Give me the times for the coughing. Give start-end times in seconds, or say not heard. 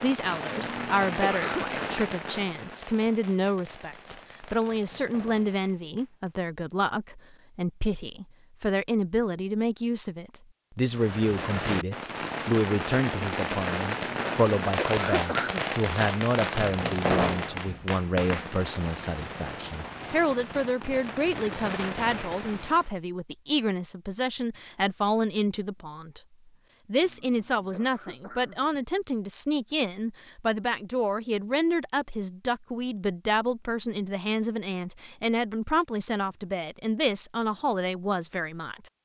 0.5-1.6, 14.1-15.7, 27.0-28.9.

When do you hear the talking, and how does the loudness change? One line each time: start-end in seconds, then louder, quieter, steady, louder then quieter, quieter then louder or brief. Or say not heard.
0.0-26.2 steady
26.9-38.9 steady.